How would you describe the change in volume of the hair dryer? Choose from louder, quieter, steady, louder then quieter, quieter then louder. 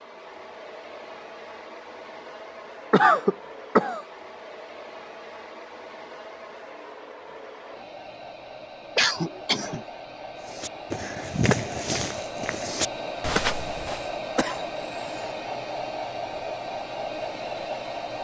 louder.